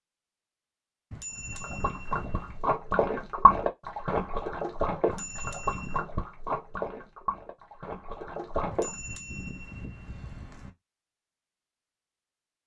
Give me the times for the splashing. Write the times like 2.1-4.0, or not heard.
1.5-8.9.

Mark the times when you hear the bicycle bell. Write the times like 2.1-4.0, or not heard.
1.1-2.6, 5.0-6.0, 8.7-10.7.